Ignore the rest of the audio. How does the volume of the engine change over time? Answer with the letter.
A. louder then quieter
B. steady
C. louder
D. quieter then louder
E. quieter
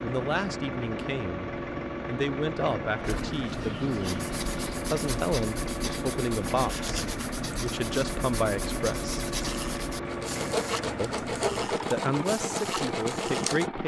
B.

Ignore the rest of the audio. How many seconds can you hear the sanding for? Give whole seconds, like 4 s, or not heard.
11 s.